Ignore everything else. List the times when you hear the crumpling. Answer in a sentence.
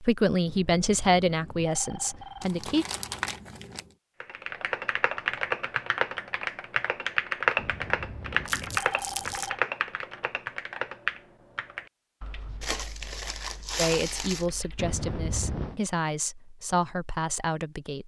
The crumpling can be heard from 2.4 to 3.9 s, from 8.4 to 9.5 s and from 12.6 to 14.5 s.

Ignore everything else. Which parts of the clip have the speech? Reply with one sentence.
The speech can be heard from 0.0 to 2.9 s and from 13.8 to 18.0 s.